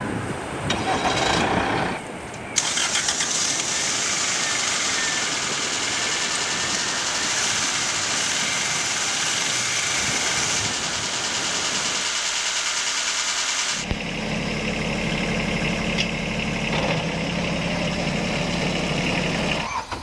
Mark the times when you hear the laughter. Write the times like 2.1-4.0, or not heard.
not heard.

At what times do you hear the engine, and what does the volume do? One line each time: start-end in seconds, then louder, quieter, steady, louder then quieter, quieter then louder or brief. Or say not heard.
0.0-19.9 steady.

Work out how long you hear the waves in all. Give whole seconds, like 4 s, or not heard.
12 s.